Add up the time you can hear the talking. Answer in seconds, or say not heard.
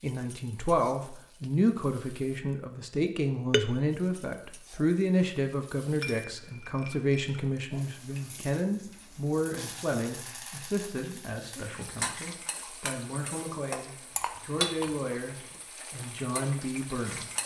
17 s.